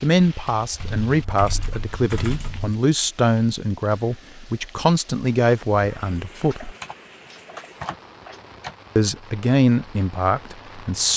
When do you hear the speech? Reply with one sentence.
The speech can be heard from 0.0 to 6.7 s and from 8.9 to 11.1 s.